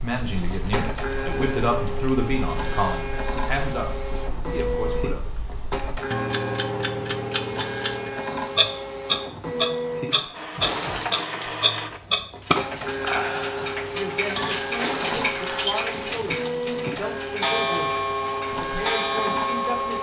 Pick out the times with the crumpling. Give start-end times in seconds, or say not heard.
0.3-2.0, 10.6-11.5, 14.8-15.3.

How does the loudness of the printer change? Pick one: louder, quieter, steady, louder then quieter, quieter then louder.
steady.